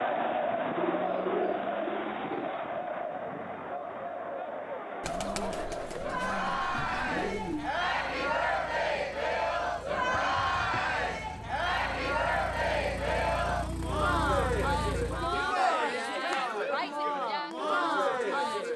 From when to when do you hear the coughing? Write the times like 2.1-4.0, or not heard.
not heard.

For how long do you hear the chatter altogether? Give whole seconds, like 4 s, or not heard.
19 s.